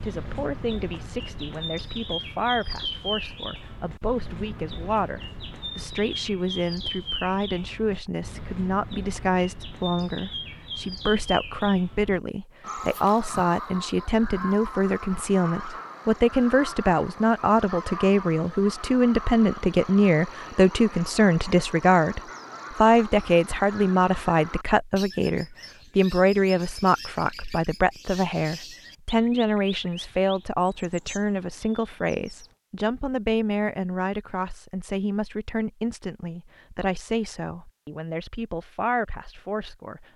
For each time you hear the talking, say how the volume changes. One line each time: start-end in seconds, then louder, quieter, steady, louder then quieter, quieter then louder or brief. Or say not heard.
0.0-40.0 louder then quieter.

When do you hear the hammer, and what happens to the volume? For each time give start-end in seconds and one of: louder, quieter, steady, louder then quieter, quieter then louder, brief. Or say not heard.
not heard.